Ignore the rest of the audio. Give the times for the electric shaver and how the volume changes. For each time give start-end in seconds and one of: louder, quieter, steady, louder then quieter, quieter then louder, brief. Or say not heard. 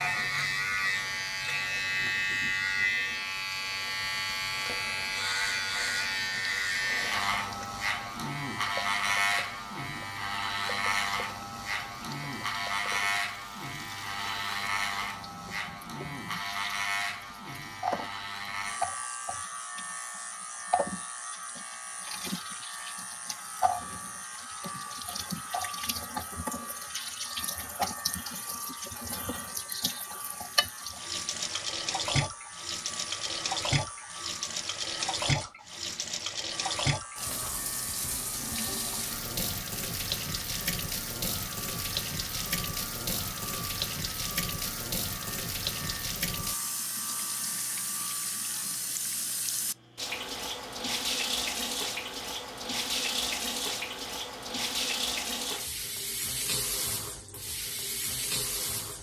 0.0-48.9 quieter.